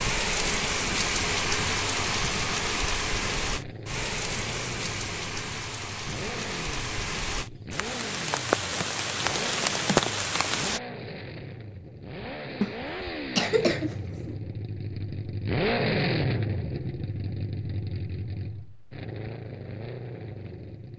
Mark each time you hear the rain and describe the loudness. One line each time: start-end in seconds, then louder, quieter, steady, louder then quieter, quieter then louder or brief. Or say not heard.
0.0-10.8 quieter then louder.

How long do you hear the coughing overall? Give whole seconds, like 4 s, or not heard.
2 s.